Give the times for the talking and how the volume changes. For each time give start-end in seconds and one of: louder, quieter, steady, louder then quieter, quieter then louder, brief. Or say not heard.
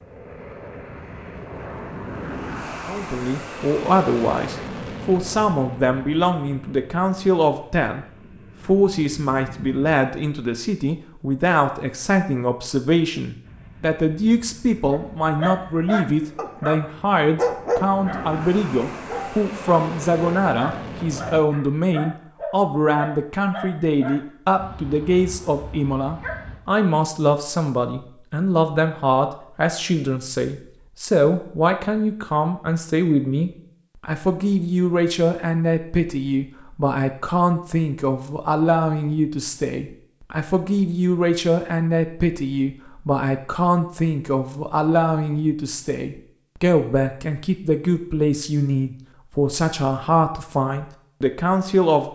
2.9-52.1 steady.